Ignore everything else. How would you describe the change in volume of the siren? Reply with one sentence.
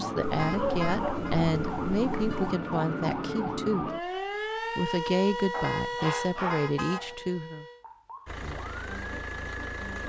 The volume of the siren goes down.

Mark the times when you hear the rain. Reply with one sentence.
You can't hear the rain here.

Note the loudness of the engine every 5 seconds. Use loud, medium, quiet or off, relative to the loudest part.
off, loud.